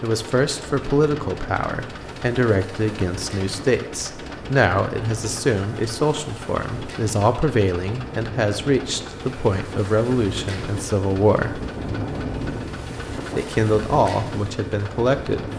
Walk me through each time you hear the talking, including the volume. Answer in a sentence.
The talking can be heard from 0.0 to 11.7 s, at a steady volume; and briefly from 13.3 to 15.4 s.